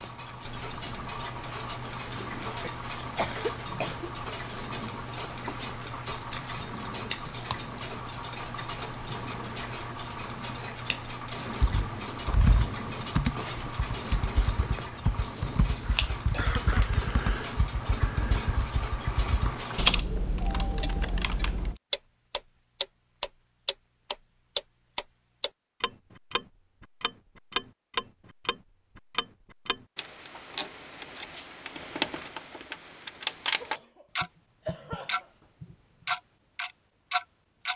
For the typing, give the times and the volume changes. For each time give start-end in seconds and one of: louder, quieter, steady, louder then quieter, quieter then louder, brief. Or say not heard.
11.6-21.8 quieter then louder.